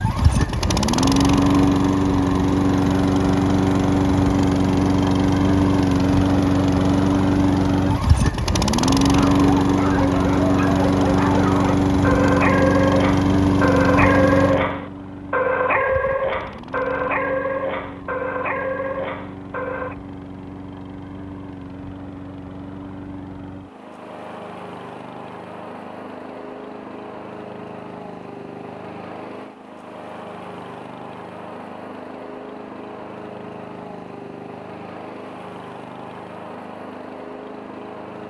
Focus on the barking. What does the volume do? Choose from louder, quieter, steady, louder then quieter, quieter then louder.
louder then quieter.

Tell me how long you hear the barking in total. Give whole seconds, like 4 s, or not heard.
11 s.